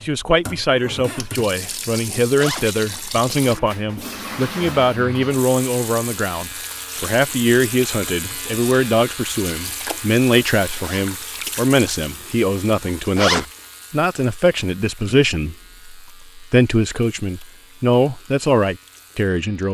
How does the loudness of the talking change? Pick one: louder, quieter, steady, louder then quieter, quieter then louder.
steady.